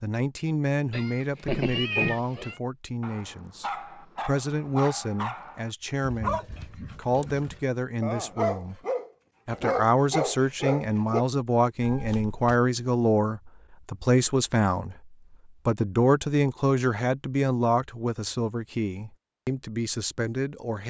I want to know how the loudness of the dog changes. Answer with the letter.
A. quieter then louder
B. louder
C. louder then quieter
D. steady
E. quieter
B.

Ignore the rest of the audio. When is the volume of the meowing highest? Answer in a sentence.
The loudest moment of the meowing is at 2 seconds.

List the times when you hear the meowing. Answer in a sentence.
You can hear the meowing from 0.9 to 2.5 s and from 11.8 to 12.6 s.